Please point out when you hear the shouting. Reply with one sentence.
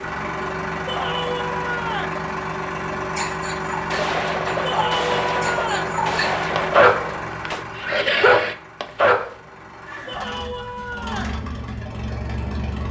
The shouting can be heard from 0.8 to 2.2 s, from 4.6 to 6.0 s and from 10.1 to 11.4 s.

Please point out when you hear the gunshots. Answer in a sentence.
The gunshots can be heard from 3.9 to 7.7 s.